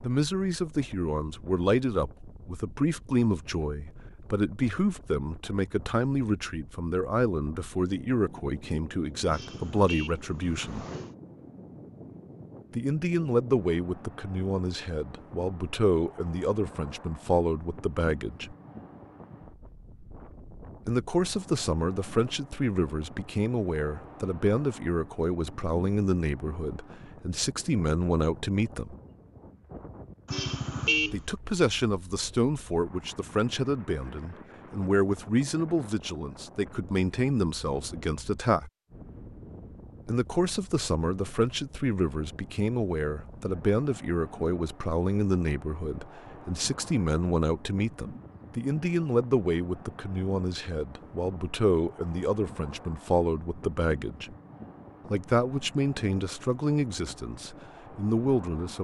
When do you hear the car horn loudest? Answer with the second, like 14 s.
31 s.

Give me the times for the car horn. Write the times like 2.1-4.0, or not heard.
9.3-11.2, 30.2-31.2.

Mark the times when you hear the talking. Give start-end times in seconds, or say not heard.
0.0-10.8, 12.8-18.6, 20.9-28.9, 31.1-38.7, 40.0-54.4, 55.1-58.7.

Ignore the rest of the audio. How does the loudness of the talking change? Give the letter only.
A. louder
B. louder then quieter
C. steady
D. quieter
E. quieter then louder
C.